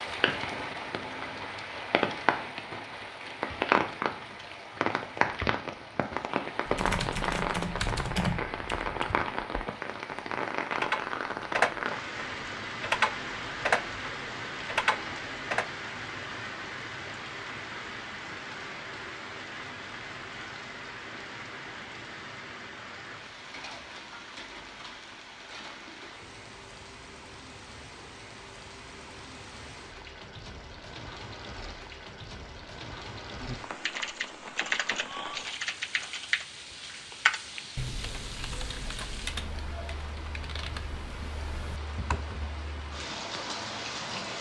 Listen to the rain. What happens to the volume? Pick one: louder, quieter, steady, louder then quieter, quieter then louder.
quieter.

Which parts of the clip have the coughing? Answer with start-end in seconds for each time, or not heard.
not heard.